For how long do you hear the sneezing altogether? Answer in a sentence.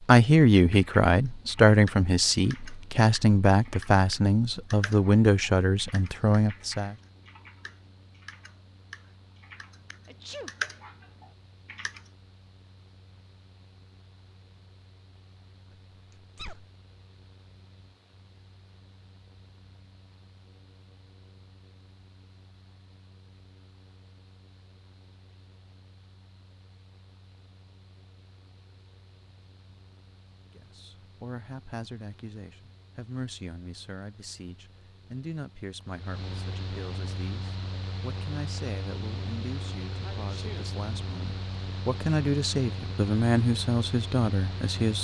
You can hear the sneezing for 2 seconds altogether.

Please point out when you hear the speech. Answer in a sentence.
You can hear the speech from 0.0 to 7.0 s and from 30.5 to 44.9 s.